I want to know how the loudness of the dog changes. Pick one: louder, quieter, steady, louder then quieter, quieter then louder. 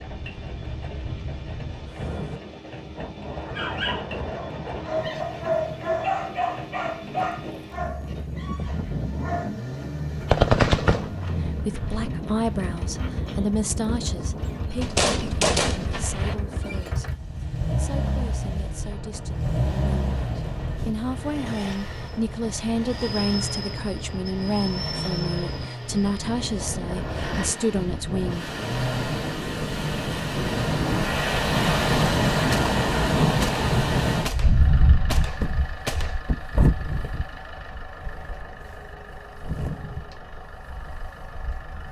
louder then quieter.